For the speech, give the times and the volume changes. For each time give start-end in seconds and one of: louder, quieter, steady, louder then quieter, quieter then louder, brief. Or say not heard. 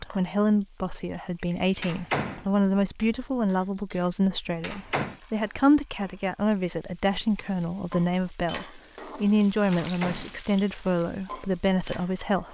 0.0-12.4 steady.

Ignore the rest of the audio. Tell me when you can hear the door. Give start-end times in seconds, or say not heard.
1.8-2.5, 4.6-5.2, 9.7-10.4.